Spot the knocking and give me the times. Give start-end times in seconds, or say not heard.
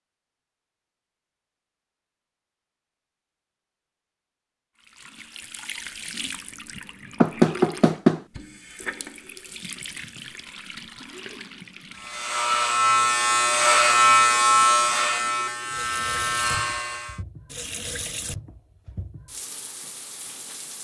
7.2-8.2.